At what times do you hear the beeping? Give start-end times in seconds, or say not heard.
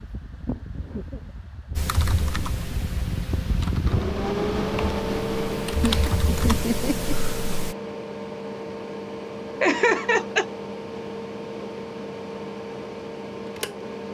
not heard.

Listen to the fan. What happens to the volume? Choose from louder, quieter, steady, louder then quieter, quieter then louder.
louder then quieter.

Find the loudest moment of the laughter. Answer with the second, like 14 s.
10 s.